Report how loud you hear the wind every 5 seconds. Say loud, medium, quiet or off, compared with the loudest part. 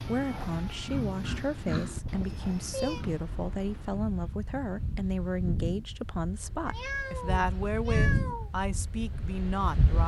medium, loud.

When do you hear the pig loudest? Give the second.
2 s.